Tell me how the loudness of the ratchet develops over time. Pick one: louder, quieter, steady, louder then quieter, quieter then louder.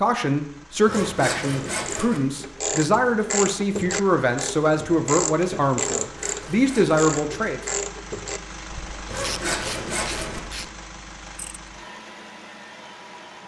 quieter.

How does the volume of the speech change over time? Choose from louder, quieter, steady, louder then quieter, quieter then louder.
steady.